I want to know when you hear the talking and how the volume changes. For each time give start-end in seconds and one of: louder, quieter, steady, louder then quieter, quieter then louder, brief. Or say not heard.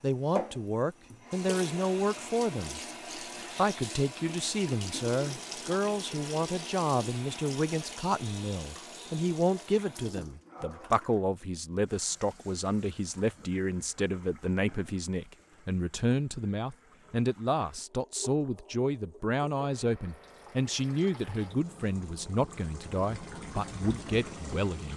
0.0-2.8 brief
3.5-24.9 steady.